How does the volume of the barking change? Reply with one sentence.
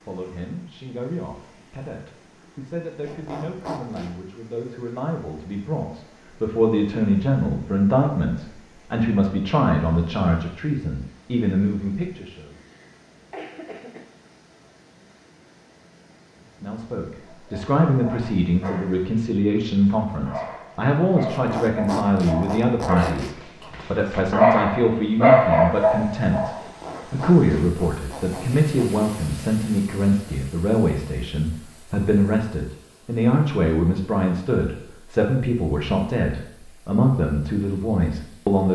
The loudness of the barking goes up.